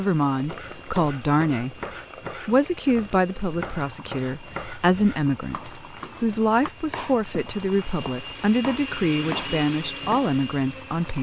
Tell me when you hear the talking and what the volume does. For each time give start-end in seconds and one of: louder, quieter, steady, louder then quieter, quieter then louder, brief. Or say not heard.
0.0-1.8 brief
2.5-11.1 steady.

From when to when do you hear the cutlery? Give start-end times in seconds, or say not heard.
not heard.